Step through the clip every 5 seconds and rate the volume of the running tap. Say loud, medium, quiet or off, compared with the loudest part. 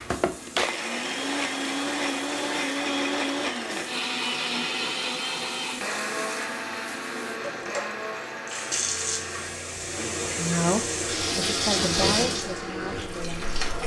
quiet, medium, loud.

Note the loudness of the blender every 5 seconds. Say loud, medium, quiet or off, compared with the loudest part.
loud, medium, medium.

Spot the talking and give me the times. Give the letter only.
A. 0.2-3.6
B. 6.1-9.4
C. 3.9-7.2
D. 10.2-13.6
D.